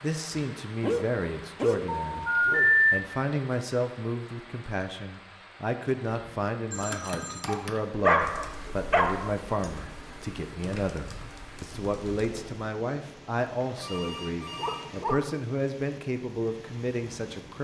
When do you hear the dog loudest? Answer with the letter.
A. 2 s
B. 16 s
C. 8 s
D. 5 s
C.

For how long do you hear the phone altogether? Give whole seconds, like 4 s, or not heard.
4 s.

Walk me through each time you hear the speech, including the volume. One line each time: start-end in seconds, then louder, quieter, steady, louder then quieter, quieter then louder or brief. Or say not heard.
0.0-17.5 steady.